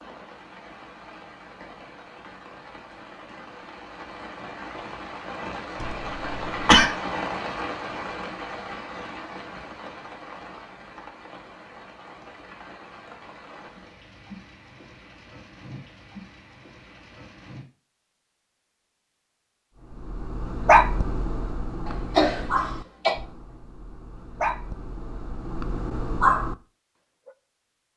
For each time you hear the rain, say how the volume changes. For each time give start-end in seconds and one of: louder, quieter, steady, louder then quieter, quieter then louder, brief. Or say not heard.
0.0-17.6 louder then quieter.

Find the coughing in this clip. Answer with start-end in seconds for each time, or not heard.
5.8-6.8, 21.9-23.1.